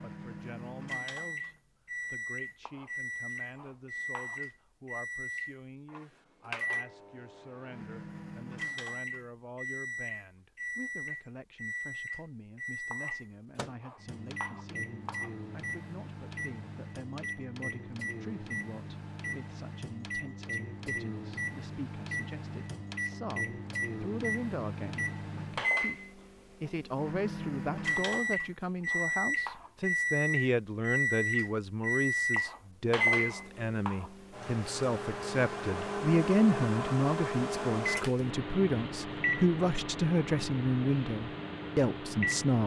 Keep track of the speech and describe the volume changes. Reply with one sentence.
The volume of the speech goes up.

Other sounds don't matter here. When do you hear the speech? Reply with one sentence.
The speech can be heard from 0.0 to 42.6 s.